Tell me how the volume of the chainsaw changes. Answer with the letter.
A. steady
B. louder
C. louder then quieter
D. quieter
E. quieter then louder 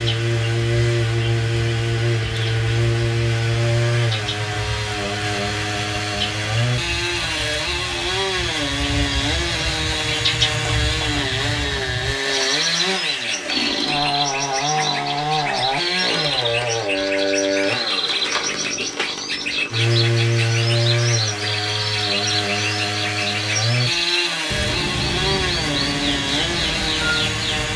A.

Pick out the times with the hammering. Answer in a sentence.
The hammering can't be heard in this clip.